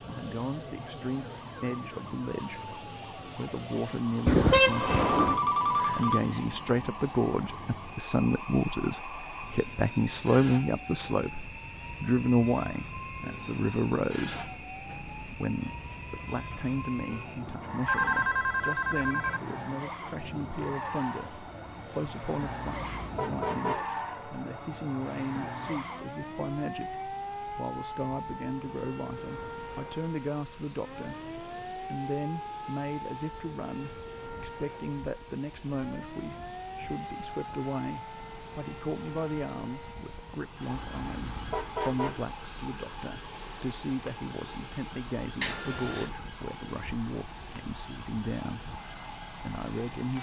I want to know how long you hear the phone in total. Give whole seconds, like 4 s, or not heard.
4 s.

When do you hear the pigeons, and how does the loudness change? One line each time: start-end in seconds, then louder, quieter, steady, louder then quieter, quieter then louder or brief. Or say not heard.
not heard.